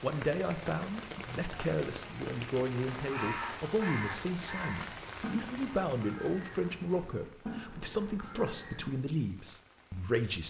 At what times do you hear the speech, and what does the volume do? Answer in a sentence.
The speech can be heard from 0.0 to 10.4 s, at a steady volume.